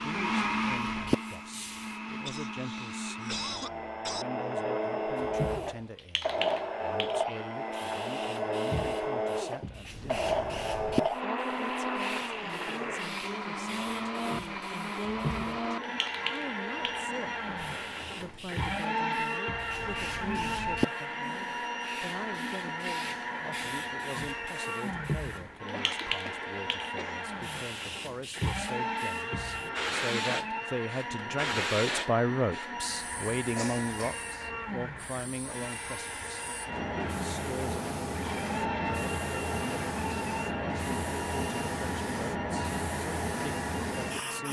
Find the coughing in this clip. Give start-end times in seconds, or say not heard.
2.2-4.2, 25.7-27.2, 33.5-34.2.